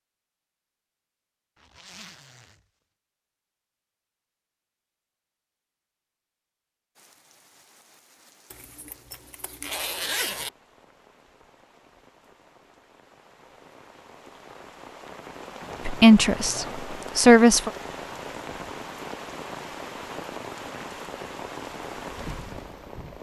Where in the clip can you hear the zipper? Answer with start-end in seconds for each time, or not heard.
1.6-2.6, 8.5-10.5, 15.6-16.9.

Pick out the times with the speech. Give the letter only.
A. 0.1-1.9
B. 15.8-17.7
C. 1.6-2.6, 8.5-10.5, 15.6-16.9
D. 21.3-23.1
B.